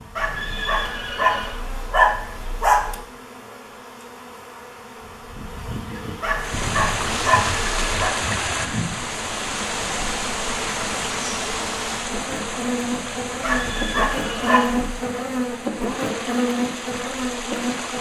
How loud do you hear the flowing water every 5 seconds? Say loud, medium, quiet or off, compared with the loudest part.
off, loud, loud, medium.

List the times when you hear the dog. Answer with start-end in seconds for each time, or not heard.
0.1-3.0, 6.2-8.1, 13.4-14.9.